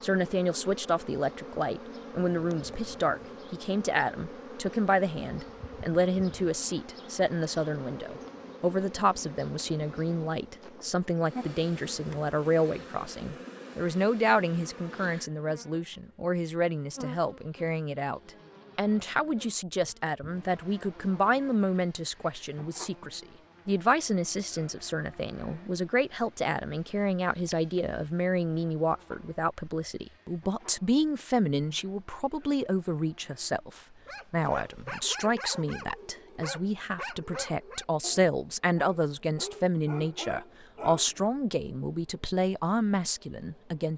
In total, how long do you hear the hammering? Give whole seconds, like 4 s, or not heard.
not heard.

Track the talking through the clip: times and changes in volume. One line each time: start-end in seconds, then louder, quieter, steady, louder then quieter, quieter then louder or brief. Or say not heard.
0.0-43.9 steady.